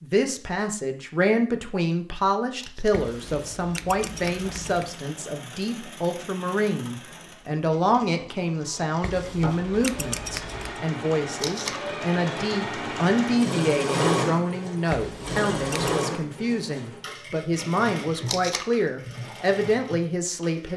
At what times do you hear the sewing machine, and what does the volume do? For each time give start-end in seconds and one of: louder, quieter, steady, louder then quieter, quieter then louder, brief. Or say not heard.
3.0-20.7 louder then quieter.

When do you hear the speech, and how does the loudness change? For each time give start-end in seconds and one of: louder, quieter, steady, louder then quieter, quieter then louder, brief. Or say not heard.
0.0-20.7 steady.